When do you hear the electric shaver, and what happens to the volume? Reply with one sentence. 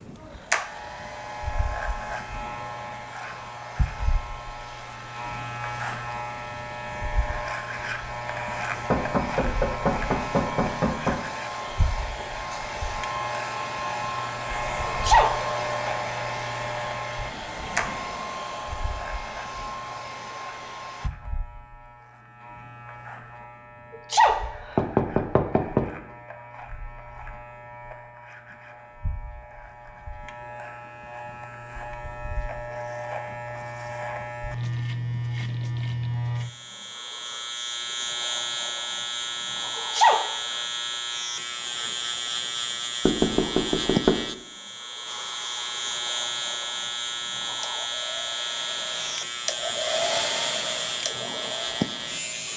The electric shaver can be heard from 0.0 to 52.5 s, getting quieter then louder.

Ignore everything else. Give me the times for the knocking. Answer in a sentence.
You can hear the knocking from 8.9 to 11.2 s, from 24.8 to 25.9 s and from 43.0 to 44.2 s.